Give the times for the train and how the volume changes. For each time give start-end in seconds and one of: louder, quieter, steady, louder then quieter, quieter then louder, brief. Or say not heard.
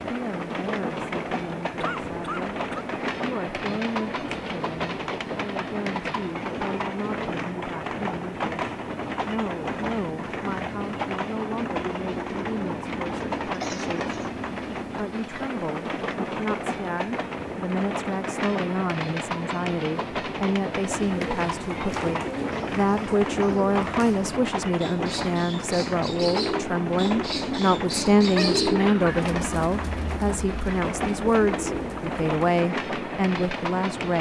0.0-34.1 steady.